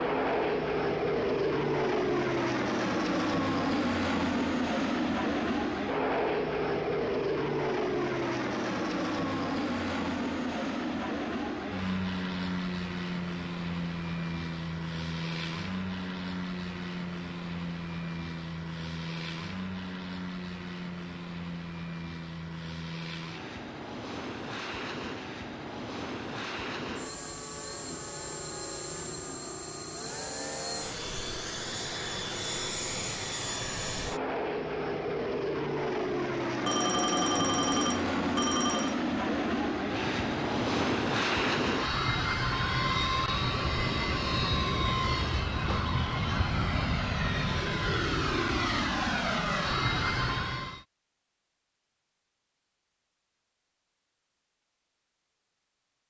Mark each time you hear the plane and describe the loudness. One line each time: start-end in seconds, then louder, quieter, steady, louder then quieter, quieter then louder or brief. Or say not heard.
0.0-50.9 quieter then louder.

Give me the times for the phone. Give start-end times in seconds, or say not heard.
36.6-39.0.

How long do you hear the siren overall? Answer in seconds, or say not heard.
not heard.